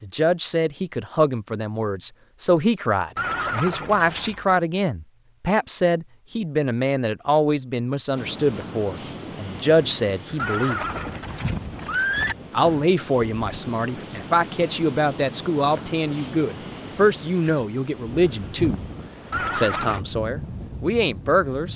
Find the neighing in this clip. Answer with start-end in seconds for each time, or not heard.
3.1-4.5, 10.3-12.3, 19.3-20.0.